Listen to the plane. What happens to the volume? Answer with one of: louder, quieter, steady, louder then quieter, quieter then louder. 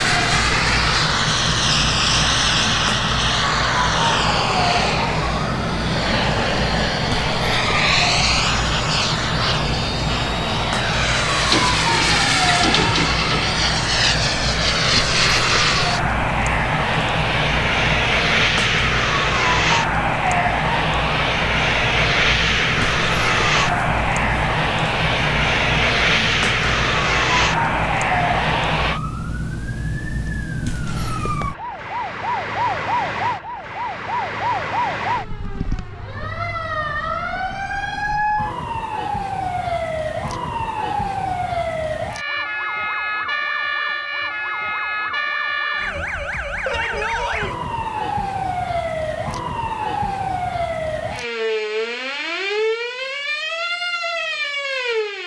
steady.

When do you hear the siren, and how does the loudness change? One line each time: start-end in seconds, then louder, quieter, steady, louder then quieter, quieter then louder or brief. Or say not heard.
0.0-55.2 steady.